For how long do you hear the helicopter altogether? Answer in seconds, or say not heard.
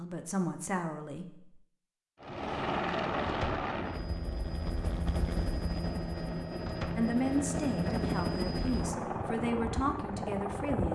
9 s.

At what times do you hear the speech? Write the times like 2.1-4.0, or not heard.
0.0-1.6, 7.0-10.9.